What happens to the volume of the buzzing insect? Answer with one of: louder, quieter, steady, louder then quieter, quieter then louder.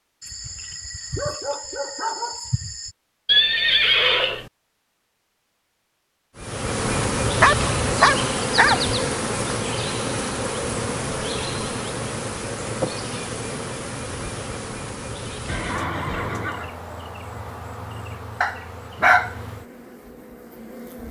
quieter.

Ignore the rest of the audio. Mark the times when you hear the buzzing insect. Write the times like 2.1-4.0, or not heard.
6.3-21.0.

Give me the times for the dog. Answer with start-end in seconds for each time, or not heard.
0.2-3.0, 7.4-8.8, 18.4-19.4.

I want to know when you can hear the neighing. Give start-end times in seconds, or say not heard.
3.2-4.5, 15.4-16.7.